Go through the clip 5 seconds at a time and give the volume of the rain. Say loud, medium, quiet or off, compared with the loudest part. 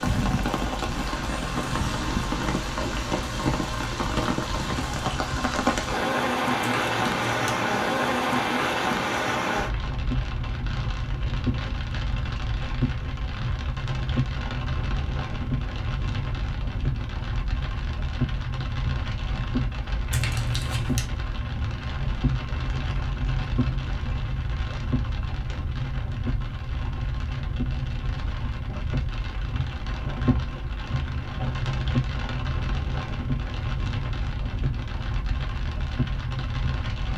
loud, loud, medium, medium, medium, medium, medium, medium.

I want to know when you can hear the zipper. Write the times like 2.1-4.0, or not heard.
not heard.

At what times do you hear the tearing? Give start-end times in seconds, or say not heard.
6.6-7.8, 20.1-21.1.